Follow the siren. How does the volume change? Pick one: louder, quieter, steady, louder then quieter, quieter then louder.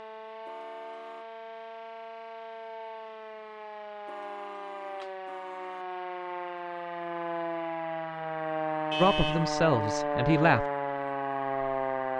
louder.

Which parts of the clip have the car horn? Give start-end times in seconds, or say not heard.
0.5-1.2, 4.0-5.8, 8.9-9.5.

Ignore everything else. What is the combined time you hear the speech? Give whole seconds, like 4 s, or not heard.
2 s.